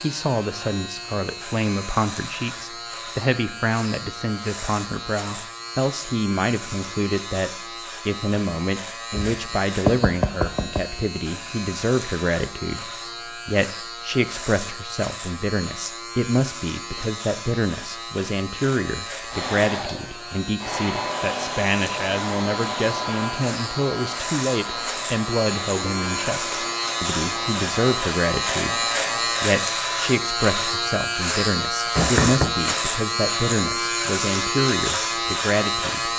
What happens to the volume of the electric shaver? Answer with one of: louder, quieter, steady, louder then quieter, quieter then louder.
louder.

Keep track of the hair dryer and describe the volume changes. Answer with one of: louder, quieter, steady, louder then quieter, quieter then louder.
quieter.